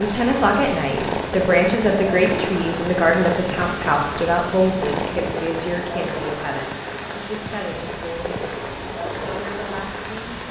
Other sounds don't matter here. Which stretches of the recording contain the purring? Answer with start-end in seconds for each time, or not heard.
0.0-10.4.